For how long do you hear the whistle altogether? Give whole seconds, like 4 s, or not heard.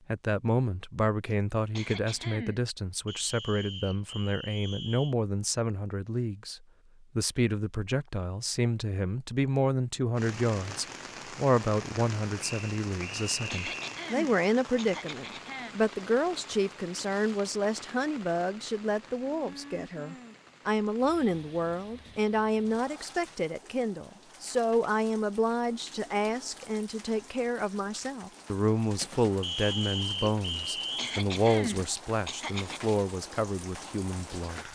5 s.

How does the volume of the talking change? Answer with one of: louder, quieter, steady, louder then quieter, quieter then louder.
steady.